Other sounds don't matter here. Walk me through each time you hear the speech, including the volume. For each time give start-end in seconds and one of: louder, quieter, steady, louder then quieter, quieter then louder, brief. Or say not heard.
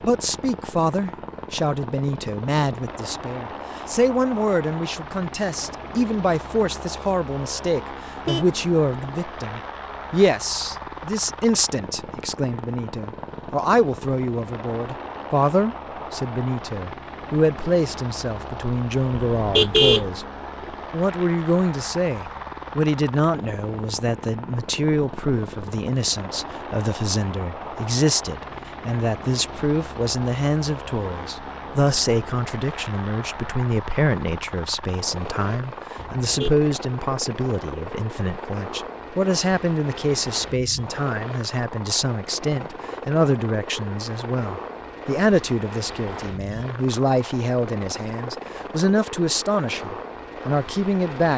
0.0-51.3 steady.